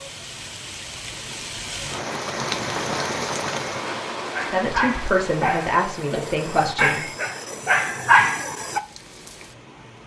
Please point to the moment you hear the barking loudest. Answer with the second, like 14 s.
8 s.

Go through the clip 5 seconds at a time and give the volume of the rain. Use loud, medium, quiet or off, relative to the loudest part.
loud, medium.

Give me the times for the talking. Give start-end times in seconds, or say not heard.
4.4-7.0.